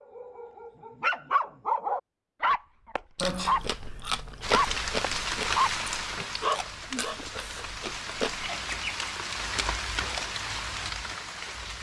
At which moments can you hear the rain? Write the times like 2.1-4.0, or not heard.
4.4-11.7.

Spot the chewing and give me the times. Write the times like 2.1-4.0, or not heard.
3.1-8.5.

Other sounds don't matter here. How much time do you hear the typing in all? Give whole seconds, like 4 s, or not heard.
not heard.